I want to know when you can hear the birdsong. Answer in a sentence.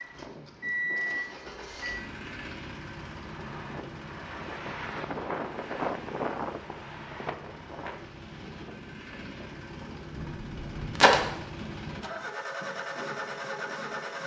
The birdsong can't be heard in this clip.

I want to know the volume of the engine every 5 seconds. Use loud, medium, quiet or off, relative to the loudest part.
loud, medium, loud.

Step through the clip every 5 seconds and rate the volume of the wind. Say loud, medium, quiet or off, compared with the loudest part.
medium, loud, medium.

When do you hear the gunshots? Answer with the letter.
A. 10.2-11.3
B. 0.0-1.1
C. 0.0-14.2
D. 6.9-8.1
A.